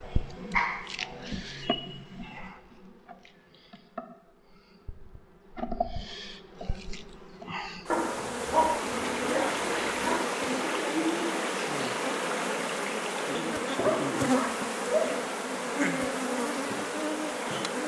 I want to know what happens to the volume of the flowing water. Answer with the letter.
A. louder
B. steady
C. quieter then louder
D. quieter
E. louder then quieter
D.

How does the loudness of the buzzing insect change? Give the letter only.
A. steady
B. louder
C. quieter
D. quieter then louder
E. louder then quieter
B.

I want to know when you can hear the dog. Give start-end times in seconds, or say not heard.
0.0-2.3, 7.9-10.2, 13.8-15.1.